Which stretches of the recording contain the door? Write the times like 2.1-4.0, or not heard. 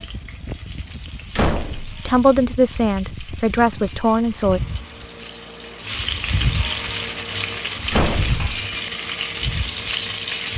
1.3-2.0, 7.9-8.4.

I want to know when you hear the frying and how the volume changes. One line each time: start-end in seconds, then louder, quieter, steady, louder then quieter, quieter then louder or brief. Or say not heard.
0.0-10.5 louder.